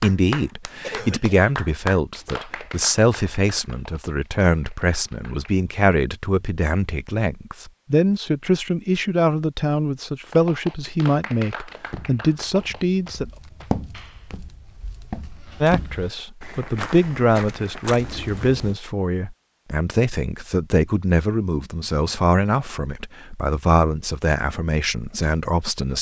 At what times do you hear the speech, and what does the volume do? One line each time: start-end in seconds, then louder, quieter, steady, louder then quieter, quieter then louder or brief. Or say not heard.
0.0-13.2 steady
15.6-25.9 steady.